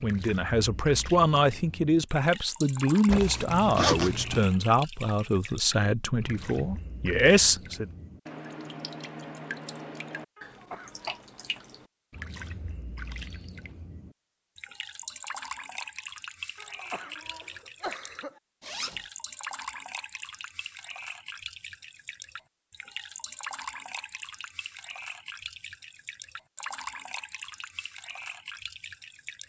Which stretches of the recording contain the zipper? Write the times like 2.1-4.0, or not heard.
3.0-4.5, 18.6-19.1.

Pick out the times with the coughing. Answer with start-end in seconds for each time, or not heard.
10.3-11.2, 16.6-18.4.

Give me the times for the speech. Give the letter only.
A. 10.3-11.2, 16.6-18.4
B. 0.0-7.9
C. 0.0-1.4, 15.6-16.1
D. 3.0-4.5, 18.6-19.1
B.